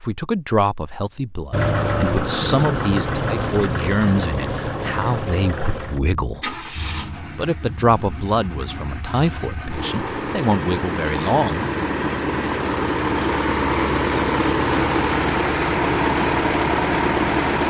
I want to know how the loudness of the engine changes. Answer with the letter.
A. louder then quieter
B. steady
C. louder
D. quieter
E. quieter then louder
E.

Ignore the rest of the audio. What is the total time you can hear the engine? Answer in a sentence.
You can hear the engine for 16 seconds altogether.